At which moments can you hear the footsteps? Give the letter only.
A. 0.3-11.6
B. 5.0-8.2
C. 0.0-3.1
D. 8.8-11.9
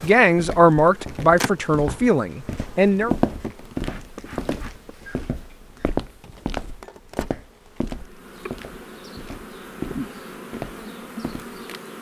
A.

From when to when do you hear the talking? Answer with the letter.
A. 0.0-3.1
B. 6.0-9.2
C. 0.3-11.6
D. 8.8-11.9
A.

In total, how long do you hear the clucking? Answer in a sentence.
The clucking can't be heard in this clip.